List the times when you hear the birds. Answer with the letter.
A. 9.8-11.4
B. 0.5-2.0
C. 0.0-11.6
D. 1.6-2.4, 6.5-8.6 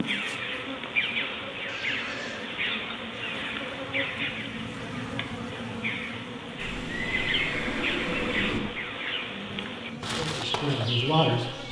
C.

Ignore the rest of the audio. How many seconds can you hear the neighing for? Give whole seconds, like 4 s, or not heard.
3 s.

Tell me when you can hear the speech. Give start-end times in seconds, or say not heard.
9.8-11.4.